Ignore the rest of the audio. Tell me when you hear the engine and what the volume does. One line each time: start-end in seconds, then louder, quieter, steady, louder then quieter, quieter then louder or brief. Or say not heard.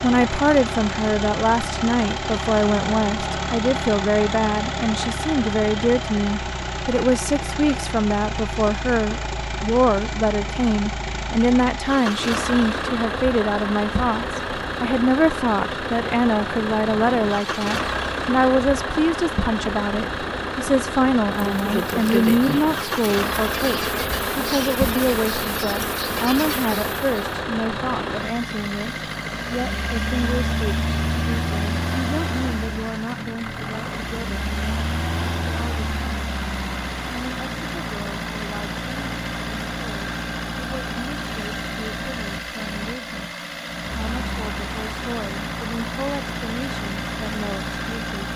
0.0-48.3 steady.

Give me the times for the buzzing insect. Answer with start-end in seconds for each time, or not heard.
21.6-27.2.